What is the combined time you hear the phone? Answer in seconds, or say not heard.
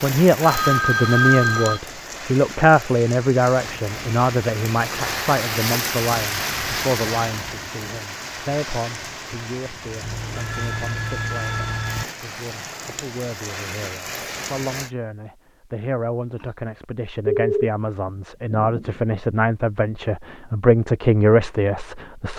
6 s.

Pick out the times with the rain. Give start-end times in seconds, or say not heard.
0.0-14.9.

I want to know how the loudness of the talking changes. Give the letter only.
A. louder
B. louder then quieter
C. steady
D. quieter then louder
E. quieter
D.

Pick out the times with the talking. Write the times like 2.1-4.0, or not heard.
0.0-22.3.